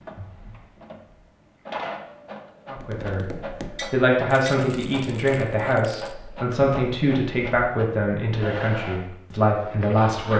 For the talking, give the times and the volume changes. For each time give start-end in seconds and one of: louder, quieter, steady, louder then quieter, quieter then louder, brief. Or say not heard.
2.7-10.3 steady.